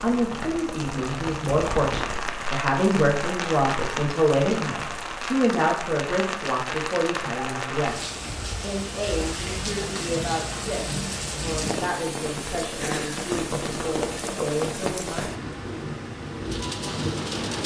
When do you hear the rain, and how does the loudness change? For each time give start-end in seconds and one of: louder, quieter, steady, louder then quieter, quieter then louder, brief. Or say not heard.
0.0-17.6 steady.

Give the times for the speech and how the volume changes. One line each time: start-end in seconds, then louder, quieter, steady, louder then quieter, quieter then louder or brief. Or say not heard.
0.0-15.3 quieter.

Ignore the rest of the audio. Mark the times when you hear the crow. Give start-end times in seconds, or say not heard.
not heard.